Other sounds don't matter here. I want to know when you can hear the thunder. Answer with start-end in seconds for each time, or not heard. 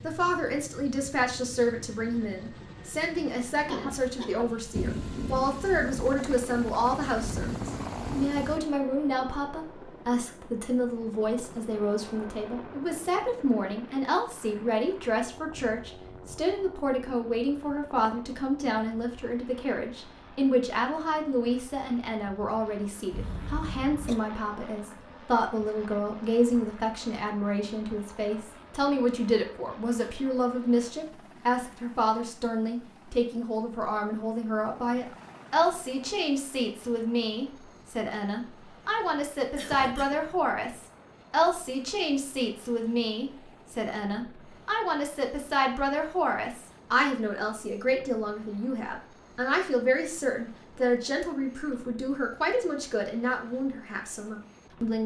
4.8-8.6.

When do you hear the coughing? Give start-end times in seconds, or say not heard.
3.6-4.5, 23.1-24.2, 39.5-40.1.